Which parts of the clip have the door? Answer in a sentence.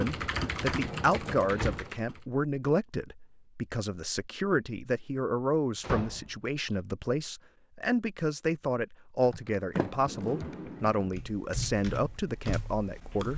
You can hear the door from 0.8 to 1.9 s, from 5.8 to 6.3 s and from 9.8 to 11.0 s.